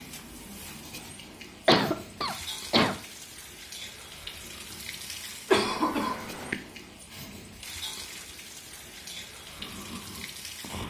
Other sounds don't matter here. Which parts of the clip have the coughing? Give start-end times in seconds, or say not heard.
1.6-3.0, 5.5-6.5.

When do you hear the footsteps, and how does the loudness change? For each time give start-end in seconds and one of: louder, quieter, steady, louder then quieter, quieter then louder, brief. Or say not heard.
not heard.